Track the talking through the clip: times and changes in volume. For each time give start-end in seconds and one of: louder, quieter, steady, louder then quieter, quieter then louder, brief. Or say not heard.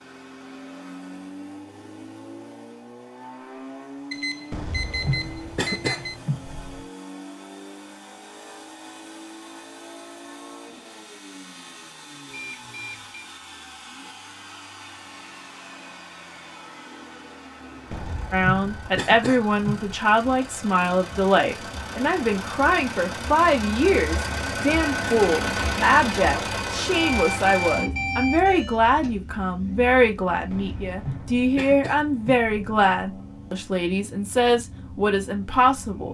18.3-36.0 steady.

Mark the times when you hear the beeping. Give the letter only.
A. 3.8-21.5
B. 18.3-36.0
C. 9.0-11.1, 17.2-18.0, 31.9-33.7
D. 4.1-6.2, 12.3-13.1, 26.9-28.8
D.